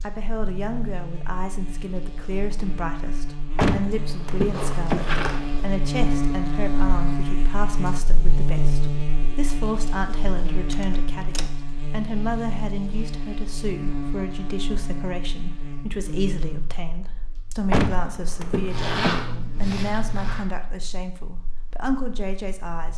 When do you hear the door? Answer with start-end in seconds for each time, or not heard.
3.5-5.7, 10.7-11.5, 17.7-19.2.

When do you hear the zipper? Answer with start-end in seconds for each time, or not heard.
4.5-5.4, 18.7-20.4.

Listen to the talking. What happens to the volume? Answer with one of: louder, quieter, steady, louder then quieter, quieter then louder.
steady.